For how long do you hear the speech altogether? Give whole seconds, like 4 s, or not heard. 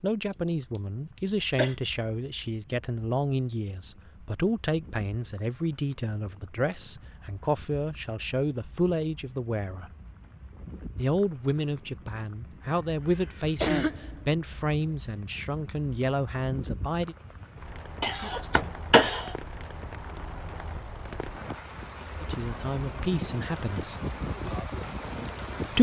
18 s.